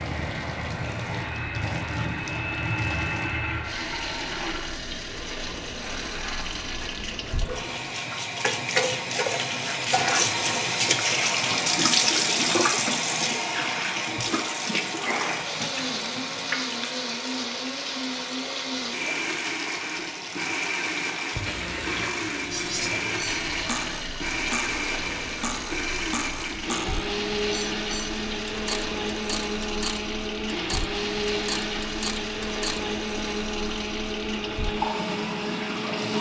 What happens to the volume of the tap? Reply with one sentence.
The volume of the tap goes up, then down.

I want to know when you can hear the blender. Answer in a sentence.
You can hear the blender from 0.0 to 7.4 s and from 15.1 to 36.1 s.